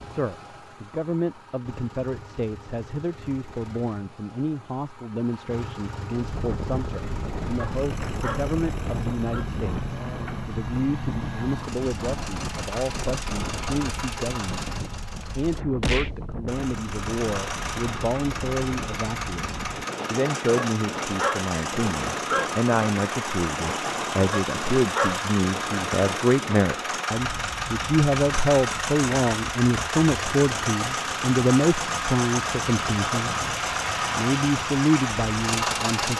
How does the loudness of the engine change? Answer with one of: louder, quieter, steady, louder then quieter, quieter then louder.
louder.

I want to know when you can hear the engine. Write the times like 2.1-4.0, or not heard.
0.0-36.1.